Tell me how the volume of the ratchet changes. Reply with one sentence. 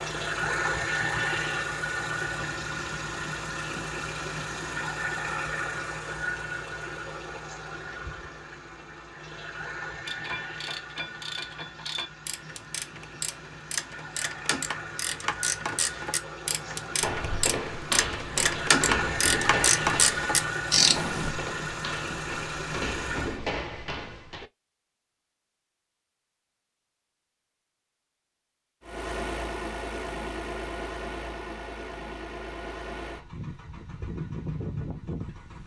The volume of the ratchet goes up.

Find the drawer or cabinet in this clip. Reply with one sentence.
The drawer or cabinet can't be heard in this clip.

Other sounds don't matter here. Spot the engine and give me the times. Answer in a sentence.
You can hear the engine from 0.0 to 23.4 s and from 28.8 to 35.6 s.